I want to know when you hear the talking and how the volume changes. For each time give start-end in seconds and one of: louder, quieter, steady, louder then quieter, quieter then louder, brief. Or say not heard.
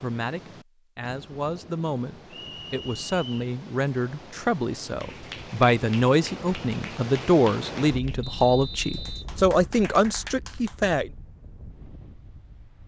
0.0-11.1 louder.